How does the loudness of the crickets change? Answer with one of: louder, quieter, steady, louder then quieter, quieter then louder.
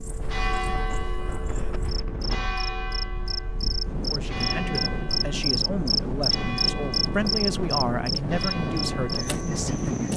louder then quieter.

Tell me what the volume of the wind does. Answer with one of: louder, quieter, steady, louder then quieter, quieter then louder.
louder.